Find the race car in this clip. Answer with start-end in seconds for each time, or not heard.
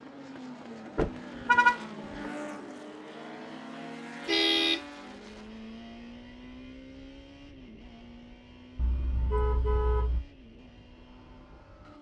0.0-11.9.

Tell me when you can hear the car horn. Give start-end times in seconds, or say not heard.
0.9-1.8, 4.2-4.8, 8.8-10.2.